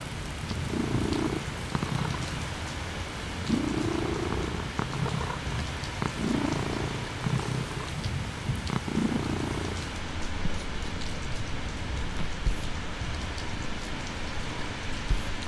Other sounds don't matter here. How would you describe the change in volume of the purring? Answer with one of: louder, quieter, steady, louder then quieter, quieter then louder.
quieter.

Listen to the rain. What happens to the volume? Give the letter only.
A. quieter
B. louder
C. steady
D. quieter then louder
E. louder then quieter
C.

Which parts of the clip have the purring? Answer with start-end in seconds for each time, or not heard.
0.0-15.4.